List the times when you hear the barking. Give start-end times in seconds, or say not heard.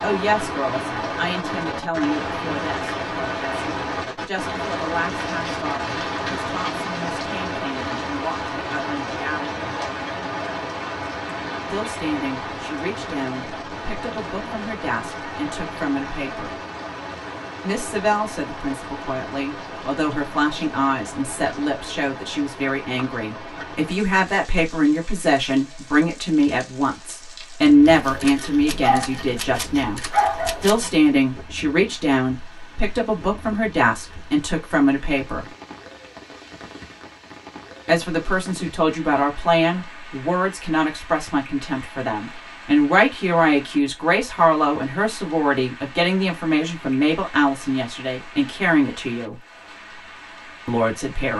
27.9-30.9.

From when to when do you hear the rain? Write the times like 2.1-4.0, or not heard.
0.0-51.3.